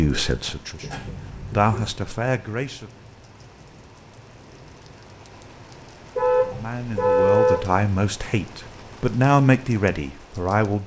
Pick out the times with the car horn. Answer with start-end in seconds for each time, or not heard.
0.8-2.1, 6.2-7.5.